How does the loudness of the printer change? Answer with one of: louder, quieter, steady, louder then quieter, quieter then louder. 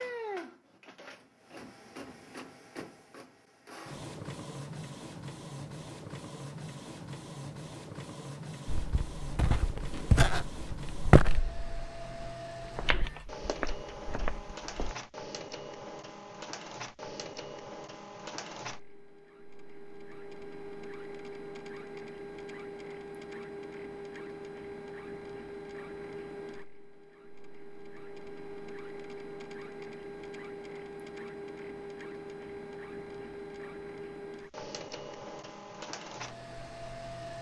steady.